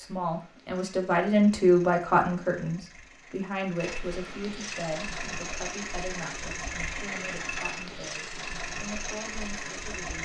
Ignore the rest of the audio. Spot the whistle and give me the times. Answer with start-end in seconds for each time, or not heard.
not heard.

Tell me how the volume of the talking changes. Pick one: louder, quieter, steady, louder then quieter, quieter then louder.
quieter.